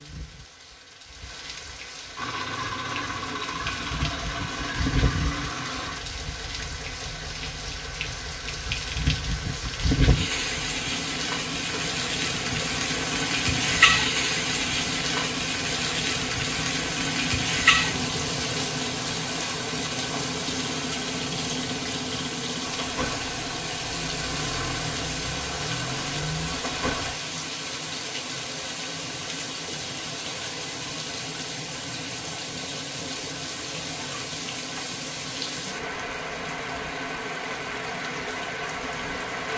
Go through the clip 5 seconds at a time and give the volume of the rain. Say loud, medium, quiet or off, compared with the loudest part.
medium, medium, loud, loud, medium, medium, medium, medium.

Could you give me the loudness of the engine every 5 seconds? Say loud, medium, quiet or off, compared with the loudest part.
loud, medium, medium, medium, loud, loud, off, off.